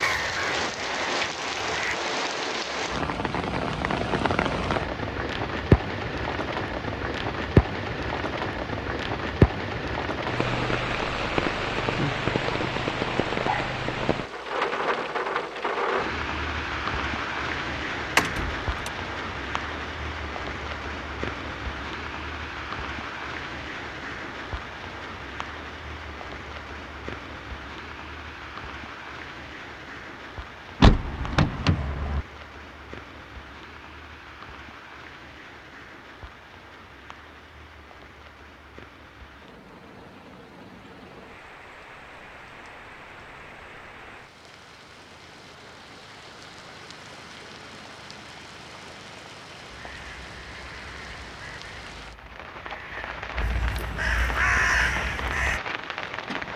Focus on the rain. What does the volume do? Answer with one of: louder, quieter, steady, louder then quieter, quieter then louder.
quieter then louder.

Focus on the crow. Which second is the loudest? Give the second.
55 s.